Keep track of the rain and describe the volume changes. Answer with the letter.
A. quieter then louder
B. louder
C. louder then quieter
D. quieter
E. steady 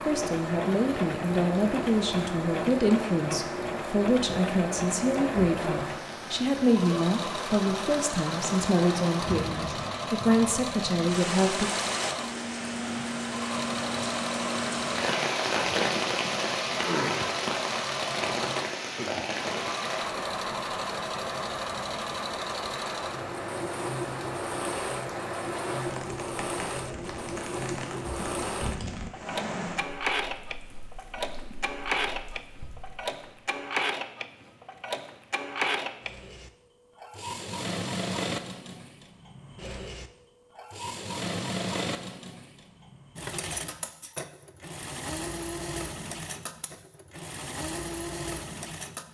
C.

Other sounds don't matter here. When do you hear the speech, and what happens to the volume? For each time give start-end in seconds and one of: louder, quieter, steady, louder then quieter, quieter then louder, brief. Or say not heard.
0.0-11.7 steady.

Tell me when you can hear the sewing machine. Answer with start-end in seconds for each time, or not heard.
0.0-49.1.